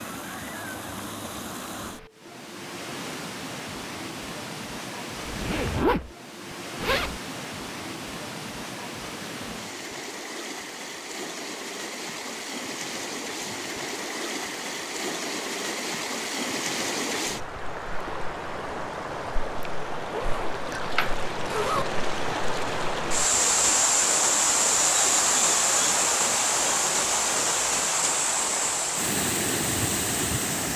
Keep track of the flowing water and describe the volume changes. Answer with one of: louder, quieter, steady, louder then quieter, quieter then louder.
louder.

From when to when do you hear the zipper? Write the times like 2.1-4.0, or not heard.
5.2-7.2, 20.1-21.9.